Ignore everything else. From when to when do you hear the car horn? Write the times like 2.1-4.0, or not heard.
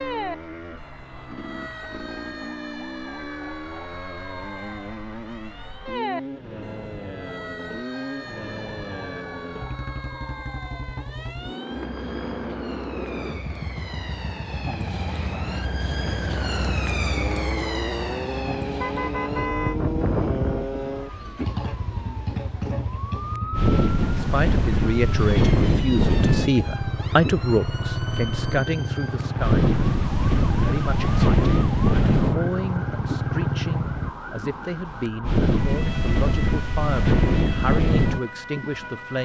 18.8-19.8.